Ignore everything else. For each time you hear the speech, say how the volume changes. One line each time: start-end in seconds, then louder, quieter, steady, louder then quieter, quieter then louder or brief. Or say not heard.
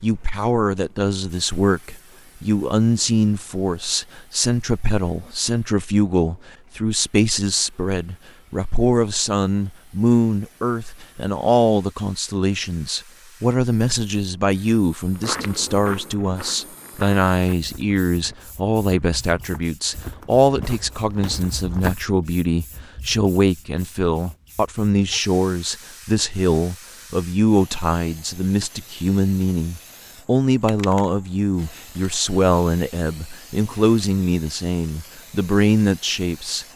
0.0-36.6 steady.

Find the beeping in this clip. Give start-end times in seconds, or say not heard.
not heard.